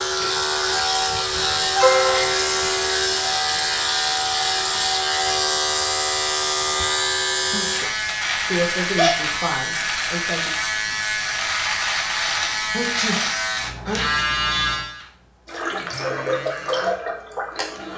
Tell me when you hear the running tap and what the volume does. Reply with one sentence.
You can hear the running tap from 0.0 to 5.0 s, at a steady volume; and briefly from 15.6 to 17.9 s.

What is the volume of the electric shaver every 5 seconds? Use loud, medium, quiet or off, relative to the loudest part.
loud, loud, loud, quiet.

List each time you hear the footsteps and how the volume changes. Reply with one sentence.
The footsteps can't be heard in this clip.